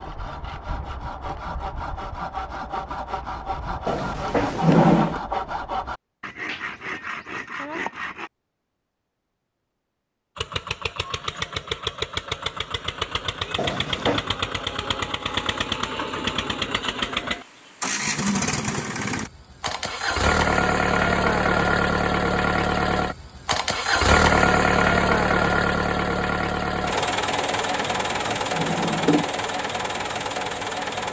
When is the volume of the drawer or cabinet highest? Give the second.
5 s.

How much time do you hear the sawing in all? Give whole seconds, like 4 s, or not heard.
8 s.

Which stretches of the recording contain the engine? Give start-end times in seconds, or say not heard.
10.3-31.0.